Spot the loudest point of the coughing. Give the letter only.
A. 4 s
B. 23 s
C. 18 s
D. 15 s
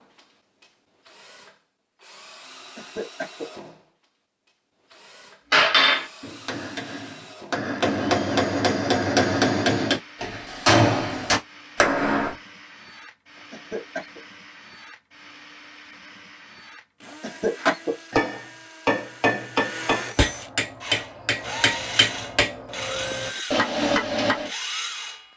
C.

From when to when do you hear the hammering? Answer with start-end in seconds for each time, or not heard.
5.5-12.3, 17.6-24.5.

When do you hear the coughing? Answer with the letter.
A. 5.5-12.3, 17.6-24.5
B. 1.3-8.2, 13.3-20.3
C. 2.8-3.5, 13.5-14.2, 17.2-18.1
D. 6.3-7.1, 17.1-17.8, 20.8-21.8
C.